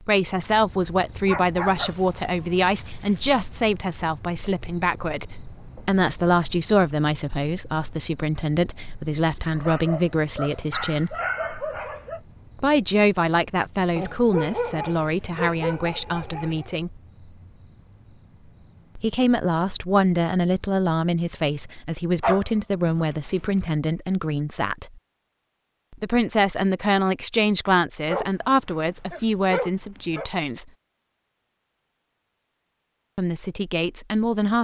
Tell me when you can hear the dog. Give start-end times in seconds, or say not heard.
1.2-3.2, 9.6-12.2, 13.9-16.7, 22.2-23.7, 28.1-30.3.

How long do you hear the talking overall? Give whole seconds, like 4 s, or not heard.
28 s.